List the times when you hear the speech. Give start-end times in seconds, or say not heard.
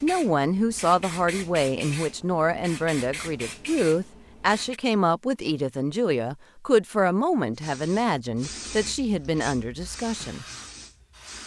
0.0-10.4.